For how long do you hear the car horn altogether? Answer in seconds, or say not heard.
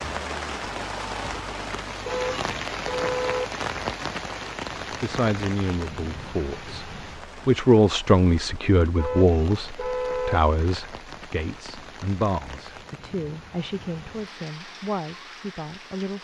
3 s.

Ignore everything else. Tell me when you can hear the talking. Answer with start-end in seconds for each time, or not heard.
4.9-16.1.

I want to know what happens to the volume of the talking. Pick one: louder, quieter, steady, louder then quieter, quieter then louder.
louder then quieter.